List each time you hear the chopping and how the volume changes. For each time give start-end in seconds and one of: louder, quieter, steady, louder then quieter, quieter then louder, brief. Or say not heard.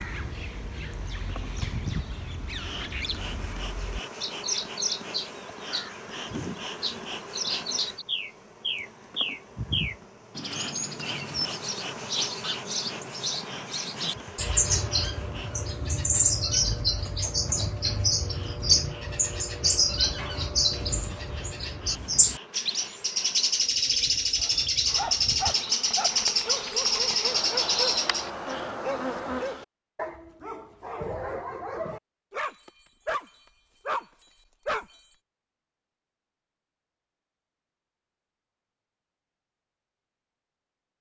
not heard.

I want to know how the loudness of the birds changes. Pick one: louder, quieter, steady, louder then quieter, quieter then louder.
louder.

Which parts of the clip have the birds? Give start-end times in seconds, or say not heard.
0.0-28.6.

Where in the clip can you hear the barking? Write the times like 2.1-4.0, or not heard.
24.4-35.1.